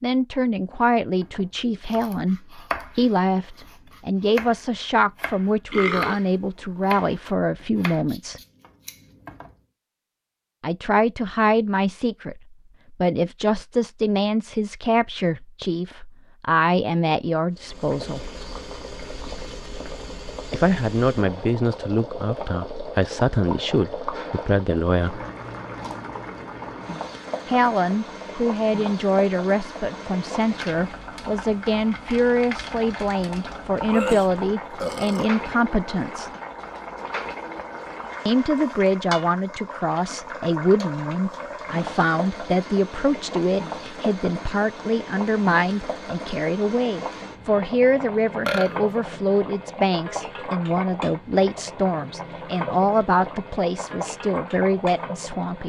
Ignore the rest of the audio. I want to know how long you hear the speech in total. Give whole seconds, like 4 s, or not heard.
47 s.